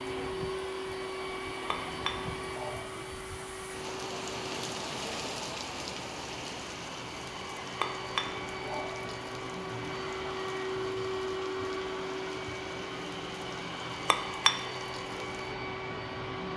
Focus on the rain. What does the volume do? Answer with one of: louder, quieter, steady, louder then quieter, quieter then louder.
louder then quieter.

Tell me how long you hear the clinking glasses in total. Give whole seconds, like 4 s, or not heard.
3 s.